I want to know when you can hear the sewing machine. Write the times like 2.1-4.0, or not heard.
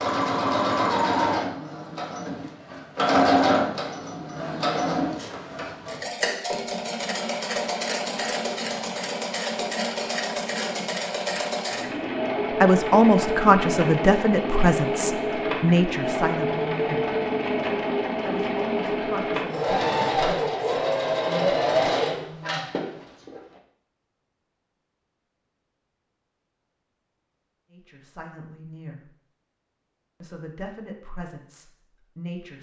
0.0-23.4.